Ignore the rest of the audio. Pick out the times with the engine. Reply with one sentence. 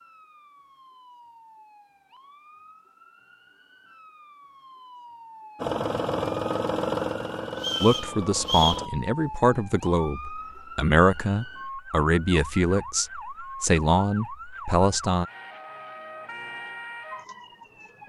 You can hear the engine from 5.5 to 8.9 s.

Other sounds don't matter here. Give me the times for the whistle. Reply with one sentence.
You can hear the whistle from 7.5 to 8.8 s.